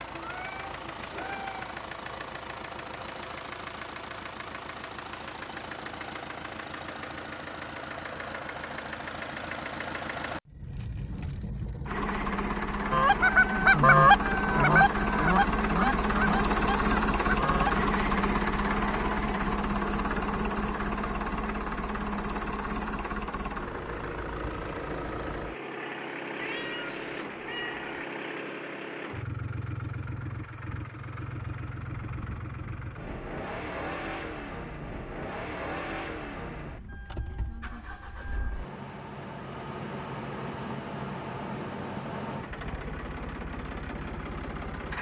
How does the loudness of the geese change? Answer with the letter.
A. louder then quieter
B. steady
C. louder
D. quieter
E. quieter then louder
D.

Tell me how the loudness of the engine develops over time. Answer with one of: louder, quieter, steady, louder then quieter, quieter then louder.
louder then quieter.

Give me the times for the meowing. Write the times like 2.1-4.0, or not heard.
0.1-1.8, 26.4-27.9.